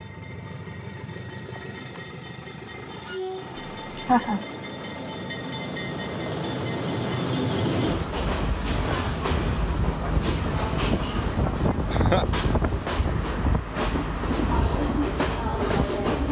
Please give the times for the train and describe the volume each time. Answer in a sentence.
You can hear the train from 0.0 to 16.2 s, getting louder.